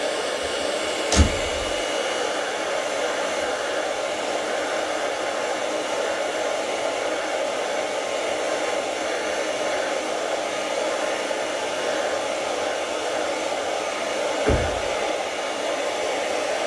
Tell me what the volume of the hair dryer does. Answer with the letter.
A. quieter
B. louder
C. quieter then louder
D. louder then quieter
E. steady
E.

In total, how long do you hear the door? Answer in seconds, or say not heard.
2 s.